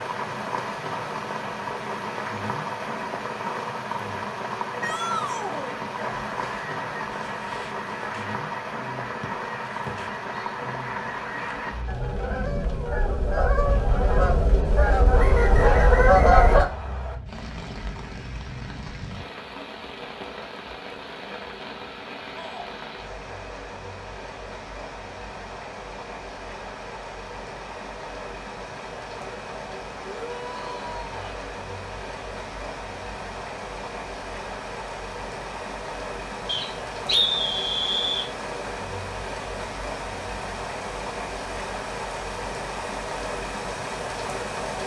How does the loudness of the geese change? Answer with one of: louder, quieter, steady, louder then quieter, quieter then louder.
louder.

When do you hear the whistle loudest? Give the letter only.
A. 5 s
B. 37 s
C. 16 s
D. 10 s
B.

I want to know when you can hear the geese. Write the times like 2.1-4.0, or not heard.
6.0-16.6.